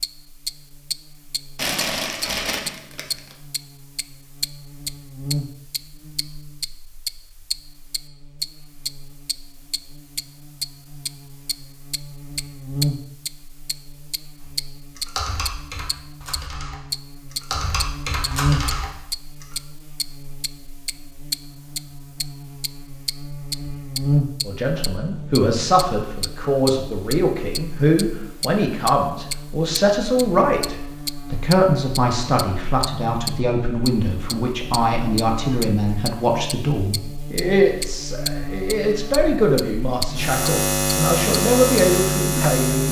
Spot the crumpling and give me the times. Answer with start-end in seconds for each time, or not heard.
1.6-3.4.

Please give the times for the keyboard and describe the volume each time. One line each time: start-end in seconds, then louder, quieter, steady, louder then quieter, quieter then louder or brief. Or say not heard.
14.4-19.6 quieter then louder.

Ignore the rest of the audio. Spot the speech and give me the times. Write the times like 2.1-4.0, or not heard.
24.4-42.8.